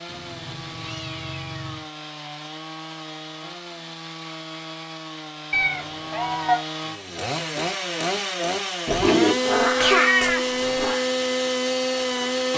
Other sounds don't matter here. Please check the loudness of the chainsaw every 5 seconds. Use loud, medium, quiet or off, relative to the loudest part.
quiet, loud, loud.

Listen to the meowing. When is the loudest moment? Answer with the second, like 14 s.
10 s.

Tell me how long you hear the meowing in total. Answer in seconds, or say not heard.
5 s.